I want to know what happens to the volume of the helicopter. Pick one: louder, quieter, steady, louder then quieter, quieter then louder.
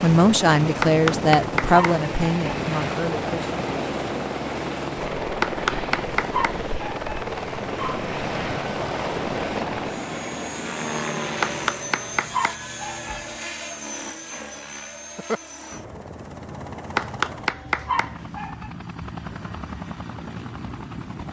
quieter.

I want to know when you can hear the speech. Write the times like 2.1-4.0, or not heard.
0.0-3.5.